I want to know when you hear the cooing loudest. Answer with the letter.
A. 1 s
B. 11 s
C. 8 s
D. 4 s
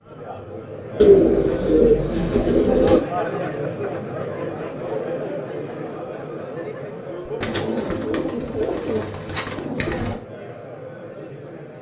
A.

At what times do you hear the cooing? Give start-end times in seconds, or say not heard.
1.0-3.0, 7.4-10.2.